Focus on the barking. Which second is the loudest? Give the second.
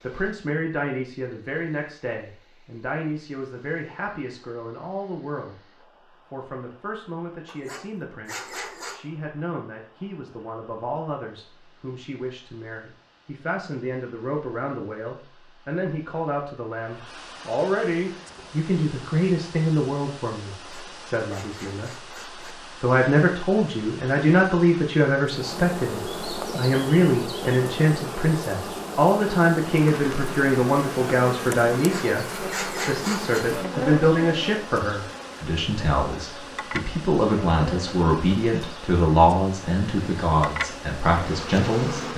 33 s.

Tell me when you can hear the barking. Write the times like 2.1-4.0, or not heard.
7.5-9.0, 20.6-22.6, 31.8-33.5.